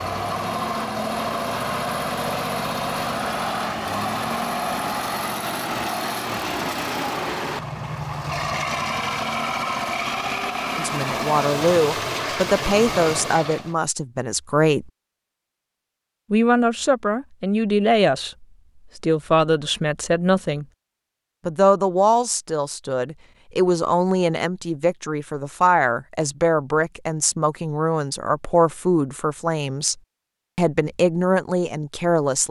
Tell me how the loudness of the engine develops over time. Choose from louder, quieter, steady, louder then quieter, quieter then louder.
steady.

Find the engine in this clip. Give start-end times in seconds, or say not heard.
0.0-13.8.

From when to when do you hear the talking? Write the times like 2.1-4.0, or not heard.
10.8-14.9, 16.3-20.6, 21.4-29.9, 30.6-32.4.